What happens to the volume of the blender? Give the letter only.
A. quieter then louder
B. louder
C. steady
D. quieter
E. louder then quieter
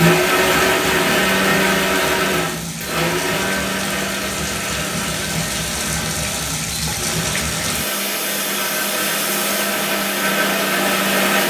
A.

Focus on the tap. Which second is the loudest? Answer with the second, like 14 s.
7 s.